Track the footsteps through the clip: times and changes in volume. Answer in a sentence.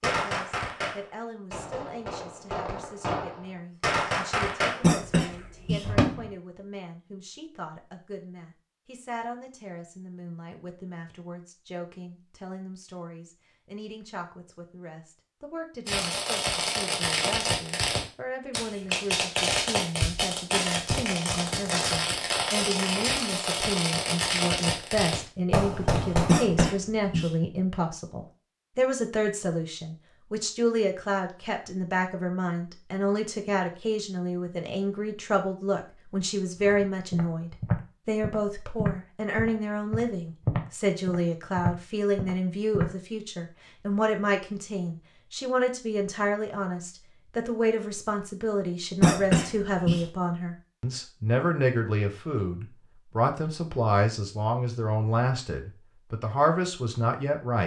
You can hear the footsteps from 36.6 to 42.9 s, getting quieter then louder.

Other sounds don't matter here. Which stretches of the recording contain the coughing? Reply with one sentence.
The coughing can be heard from 4.8 to 5.8 s, from 26.2 to 27.3 s and from 49.0 to 50.0 s.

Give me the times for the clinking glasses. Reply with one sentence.
You can't hear the clinking glasses here.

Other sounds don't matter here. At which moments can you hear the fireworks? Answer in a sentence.
You can hear the fireworks from 0.0 to 6.3 s and from 15.8 to 26.7 s.